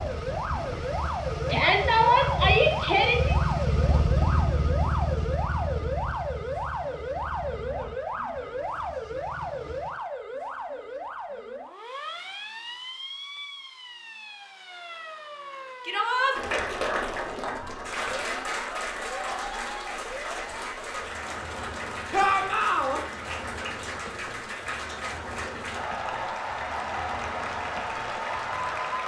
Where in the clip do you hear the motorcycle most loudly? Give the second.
4 s.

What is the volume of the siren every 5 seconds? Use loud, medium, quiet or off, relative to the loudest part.
loud, loud, medium, medium, medium, medium.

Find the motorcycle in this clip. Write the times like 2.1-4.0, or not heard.
0.0-10.0.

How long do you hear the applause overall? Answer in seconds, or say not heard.
13 s.